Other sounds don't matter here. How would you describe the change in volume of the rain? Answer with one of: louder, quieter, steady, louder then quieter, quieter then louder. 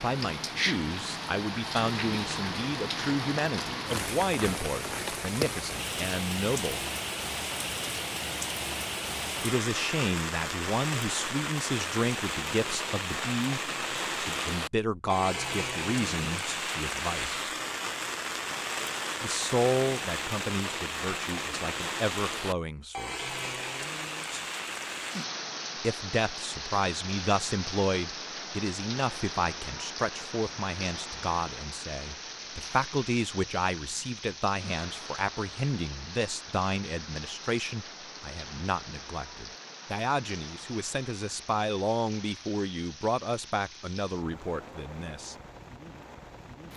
quieter.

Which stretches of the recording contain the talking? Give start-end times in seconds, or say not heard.
0.0-6.8, 9.4-17.4, 19.2-23.3, 25.8-45.4.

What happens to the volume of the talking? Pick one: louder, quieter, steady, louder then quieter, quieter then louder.
steady.